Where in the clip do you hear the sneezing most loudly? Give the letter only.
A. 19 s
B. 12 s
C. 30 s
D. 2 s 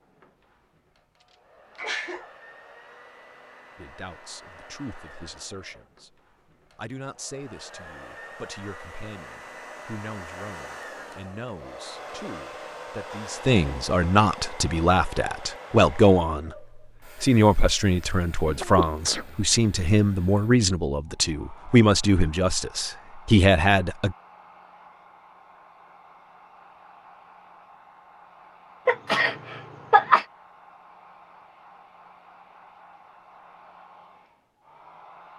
C.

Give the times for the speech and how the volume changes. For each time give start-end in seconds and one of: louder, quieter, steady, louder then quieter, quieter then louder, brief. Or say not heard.
3.8-24.1 louder.